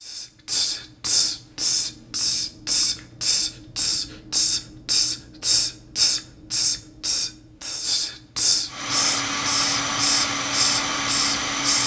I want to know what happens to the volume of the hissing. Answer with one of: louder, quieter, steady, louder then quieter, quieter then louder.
steady.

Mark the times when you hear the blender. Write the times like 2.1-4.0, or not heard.
8.7-11.8.